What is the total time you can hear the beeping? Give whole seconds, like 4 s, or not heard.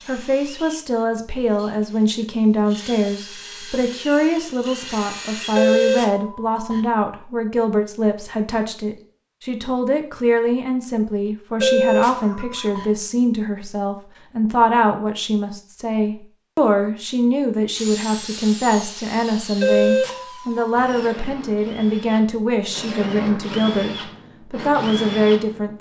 4 s.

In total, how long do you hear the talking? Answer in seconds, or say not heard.
26 s.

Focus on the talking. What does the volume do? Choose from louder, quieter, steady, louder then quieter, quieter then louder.
steady.